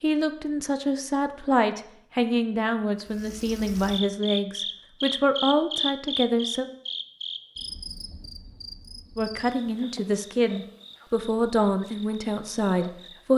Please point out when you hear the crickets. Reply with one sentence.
The crickets can be heard from 3.0 to 13.3 s.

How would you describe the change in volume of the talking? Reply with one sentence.
The loudness of the talking stays about the same.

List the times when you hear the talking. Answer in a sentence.
The talking can be heard from 0.0 to 6.7 s and from 9.2 to 13.3 s.